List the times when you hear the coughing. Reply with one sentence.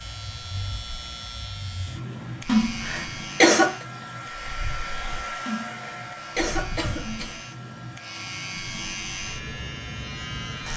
The coughing can be heard from 2.5 to 3.8 s and from 5.5 to 7.4 s.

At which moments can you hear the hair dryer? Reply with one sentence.
The hair dryer can be heard from 0.0 to 10.7 s.